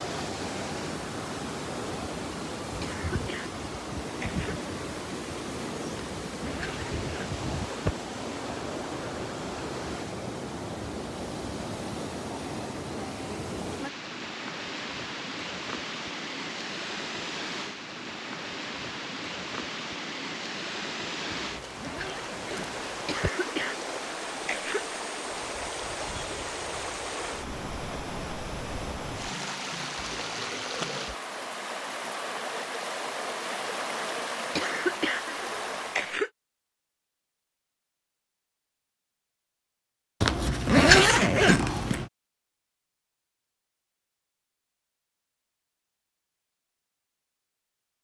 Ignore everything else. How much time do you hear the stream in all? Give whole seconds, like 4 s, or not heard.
36 s.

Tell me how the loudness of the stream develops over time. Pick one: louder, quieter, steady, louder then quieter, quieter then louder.
steady.